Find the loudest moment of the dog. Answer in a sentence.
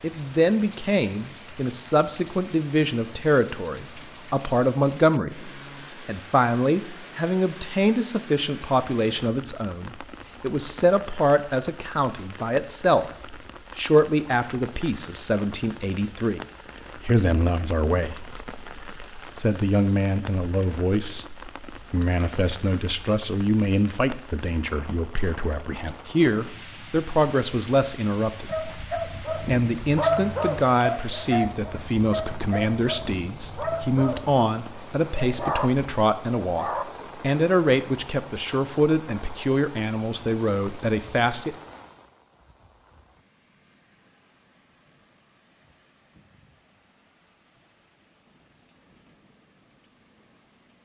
The loudest moment of the dog is at 30 seconds.